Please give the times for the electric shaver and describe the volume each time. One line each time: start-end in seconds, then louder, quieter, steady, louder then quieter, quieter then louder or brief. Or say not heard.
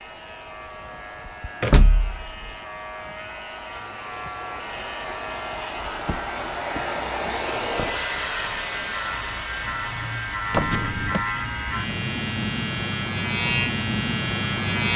0.0-14.9 louder.